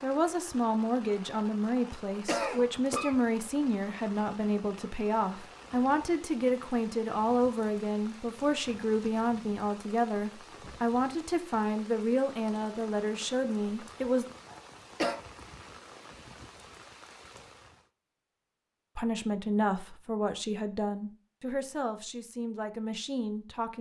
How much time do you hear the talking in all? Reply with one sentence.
You can hear the talking for 19 seconds altogether.